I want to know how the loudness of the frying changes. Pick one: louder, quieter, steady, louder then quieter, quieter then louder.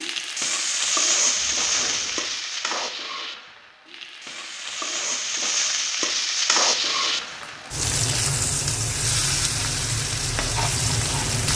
quieter then louder.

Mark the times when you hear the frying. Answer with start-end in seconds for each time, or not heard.
0.0-11.5.